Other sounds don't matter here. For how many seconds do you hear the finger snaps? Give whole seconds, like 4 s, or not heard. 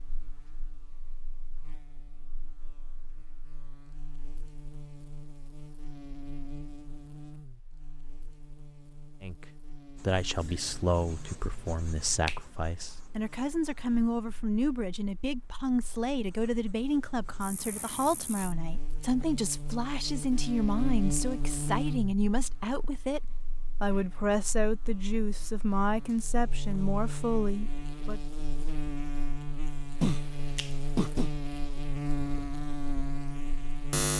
3 s.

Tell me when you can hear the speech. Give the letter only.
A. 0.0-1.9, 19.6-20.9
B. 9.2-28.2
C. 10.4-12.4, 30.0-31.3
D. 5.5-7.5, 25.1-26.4
B.